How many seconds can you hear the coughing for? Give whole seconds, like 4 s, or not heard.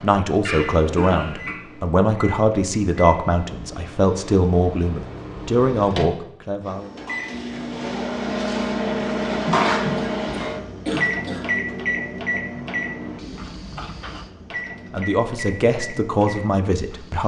3 s.